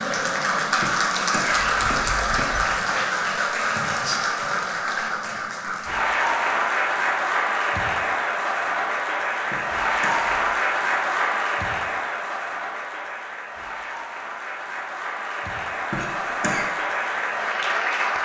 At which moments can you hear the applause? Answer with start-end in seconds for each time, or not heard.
0.0-18.1.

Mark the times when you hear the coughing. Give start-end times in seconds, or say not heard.
0.8-2.6, 9.5-10.6, 15.9-16.6.